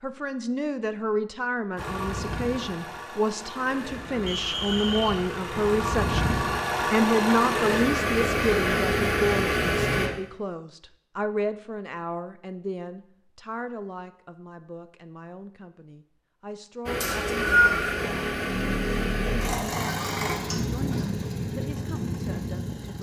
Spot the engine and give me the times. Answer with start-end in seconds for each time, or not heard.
1.8-10.1, 16.9-22.9.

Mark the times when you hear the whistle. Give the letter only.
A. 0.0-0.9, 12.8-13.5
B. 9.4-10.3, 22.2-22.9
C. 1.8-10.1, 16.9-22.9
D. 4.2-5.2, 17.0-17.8
D.